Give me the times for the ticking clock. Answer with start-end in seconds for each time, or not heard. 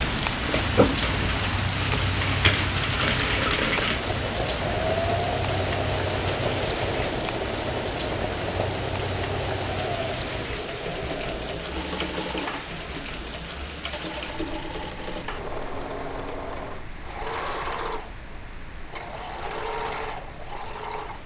not heard.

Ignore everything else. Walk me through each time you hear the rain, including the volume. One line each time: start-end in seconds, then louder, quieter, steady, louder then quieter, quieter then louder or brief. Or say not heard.
0.0-21.2 quieter.